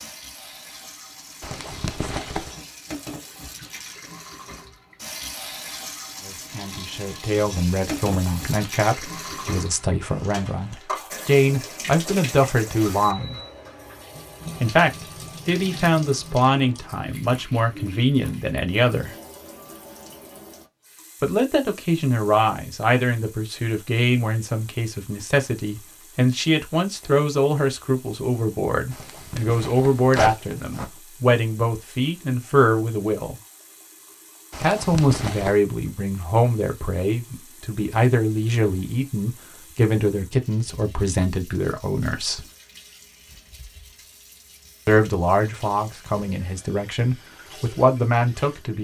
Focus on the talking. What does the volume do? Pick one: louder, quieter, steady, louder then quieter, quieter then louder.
steady.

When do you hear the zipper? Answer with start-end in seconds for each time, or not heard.
1.4-2.5, 28.9-30.9, 34.5-35.6.